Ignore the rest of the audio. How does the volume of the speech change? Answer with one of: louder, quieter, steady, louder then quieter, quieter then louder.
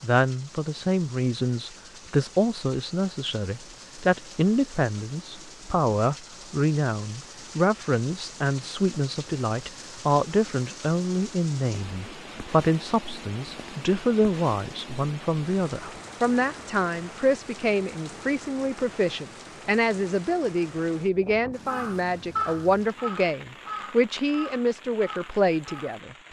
steady.